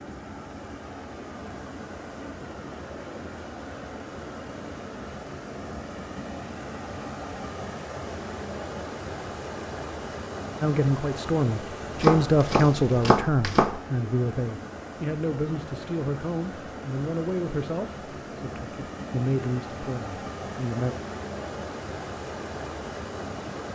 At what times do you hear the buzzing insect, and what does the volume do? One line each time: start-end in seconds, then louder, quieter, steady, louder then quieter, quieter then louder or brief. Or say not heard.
not heard.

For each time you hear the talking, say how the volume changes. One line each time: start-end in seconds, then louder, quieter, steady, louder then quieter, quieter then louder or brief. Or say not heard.
10.6-20.9 quieter.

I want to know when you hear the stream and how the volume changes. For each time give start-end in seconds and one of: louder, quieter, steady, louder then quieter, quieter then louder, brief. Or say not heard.
0.0-23.6 steady.